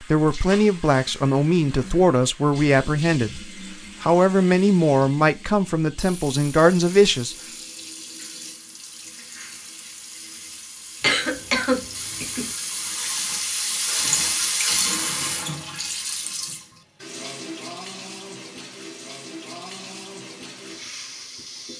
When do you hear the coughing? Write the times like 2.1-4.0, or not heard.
11.0-12.5.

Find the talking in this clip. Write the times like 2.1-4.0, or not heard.
0.0-7.3.